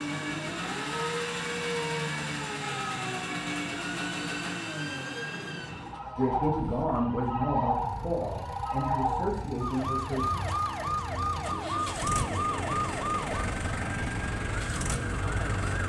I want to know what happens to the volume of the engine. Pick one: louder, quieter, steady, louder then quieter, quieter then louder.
quieter then louder.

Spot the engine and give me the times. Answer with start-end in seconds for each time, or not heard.
0.0-15.8.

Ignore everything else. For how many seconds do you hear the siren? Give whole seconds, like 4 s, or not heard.
16 s.